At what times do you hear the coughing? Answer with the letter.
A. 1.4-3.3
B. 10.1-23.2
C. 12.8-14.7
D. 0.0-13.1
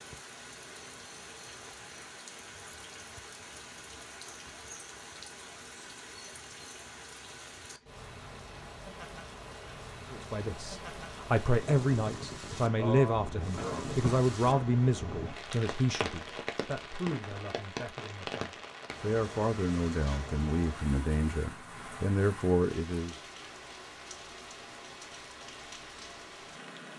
C.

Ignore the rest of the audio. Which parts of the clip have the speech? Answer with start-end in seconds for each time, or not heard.
10.1-23.2.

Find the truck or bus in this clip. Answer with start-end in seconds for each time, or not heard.
not heard.